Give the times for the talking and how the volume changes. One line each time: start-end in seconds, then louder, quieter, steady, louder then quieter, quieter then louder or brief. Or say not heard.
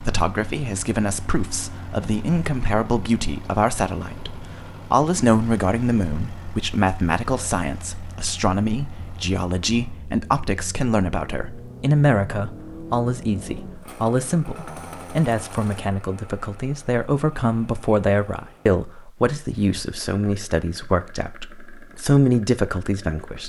0.0-23.4 steady.